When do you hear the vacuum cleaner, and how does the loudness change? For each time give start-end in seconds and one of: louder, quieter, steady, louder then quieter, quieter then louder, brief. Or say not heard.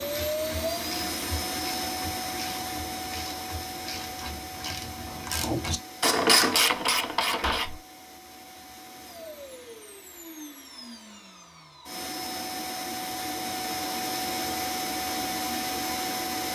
0.0-16.5 quieter then louder.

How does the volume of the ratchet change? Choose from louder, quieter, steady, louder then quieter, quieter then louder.
louder.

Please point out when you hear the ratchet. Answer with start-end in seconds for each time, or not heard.
0.0-7.8.